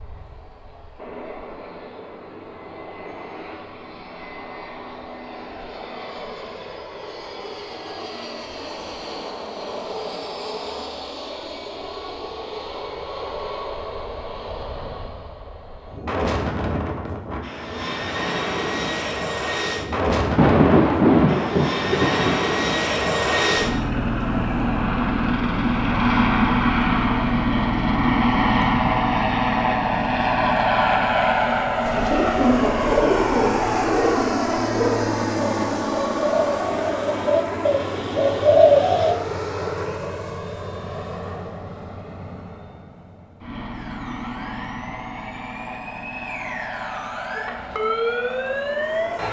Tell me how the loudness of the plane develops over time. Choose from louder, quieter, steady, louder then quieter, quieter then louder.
louder then quieter.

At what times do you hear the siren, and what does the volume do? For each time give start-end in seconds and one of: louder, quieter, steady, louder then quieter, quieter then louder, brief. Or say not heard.
43.7-49.2 louder.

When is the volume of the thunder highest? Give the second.
21 s.